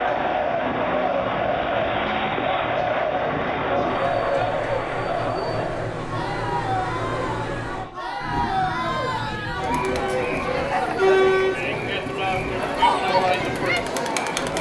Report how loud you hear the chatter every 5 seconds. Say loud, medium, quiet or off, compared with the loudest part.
loud, medium, loud.